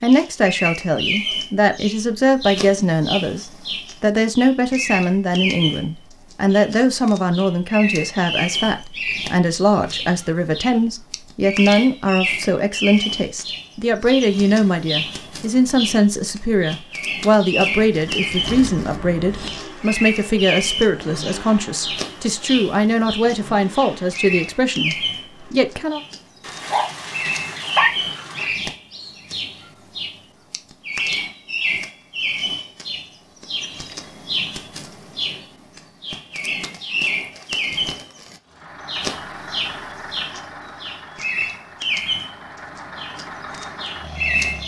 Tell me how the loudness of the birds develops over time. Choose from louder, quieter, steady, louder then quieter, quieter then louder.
steady.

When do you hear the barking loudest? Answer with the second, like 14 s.
28 s.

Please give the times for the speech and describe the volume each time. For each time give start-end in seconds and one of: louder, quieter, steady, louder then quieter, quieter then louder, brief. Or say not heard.
0.0-26.0 steady.